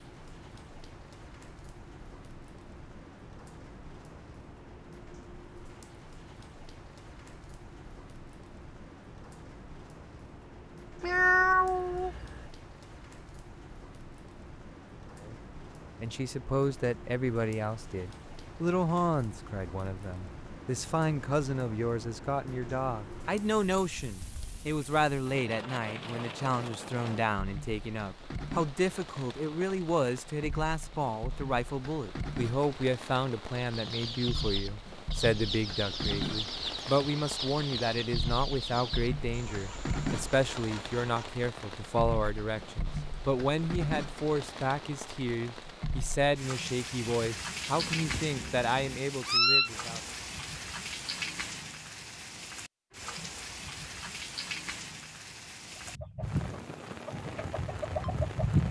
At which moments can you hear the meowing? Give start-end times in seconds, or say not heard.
11.0-12.4, 47.8-49.7.